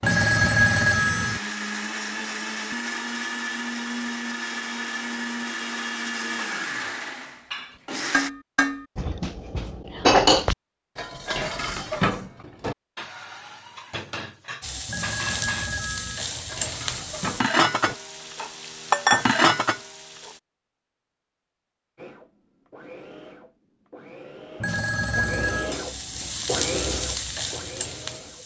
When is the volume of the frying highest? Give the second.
19 s.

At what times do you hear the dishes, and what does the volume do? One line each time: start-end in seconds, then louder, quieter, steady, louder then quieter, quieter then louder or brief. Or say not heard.
7.5-18.6 louder then quieter.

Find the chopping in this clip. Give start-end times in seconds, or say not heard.
not heard.